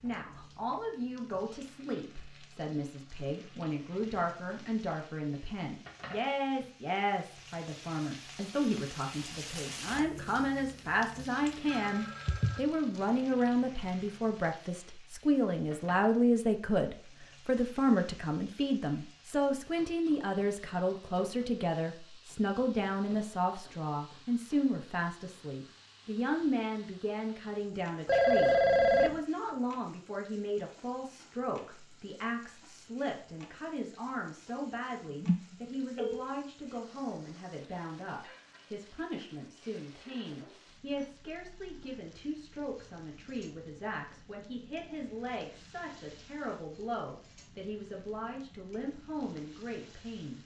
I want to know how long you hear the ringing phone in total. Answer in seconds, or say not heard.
3 s.